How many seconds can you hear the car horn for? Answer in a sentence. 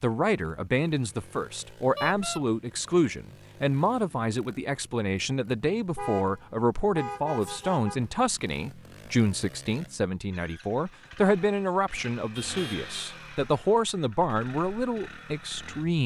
The car horn can be heard for 3 seconds in total.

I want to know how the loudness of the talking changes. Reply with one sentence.
The volume of the talking stays about the same.